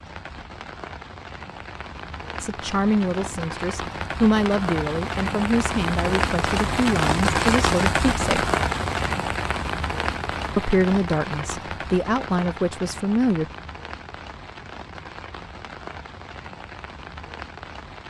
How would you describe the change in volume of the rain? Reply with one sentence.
The loudness of the rain goes up, then down.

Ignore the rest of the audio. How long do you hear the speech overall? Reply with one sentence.
The speech can be heard for 9 seconds in total.